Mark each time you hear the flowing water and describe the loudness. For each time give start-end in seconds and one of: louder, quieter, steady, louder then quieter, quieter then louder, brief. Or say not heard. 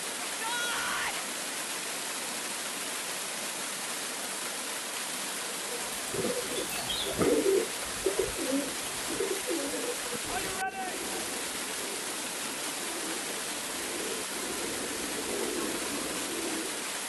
0.0-17.0 steady.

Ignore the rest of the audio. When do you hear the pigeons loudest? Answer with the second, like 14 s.
7 s.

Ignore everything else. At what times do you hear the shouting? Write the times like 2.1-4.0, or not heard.
0.2-1.2, 10.2-11.2.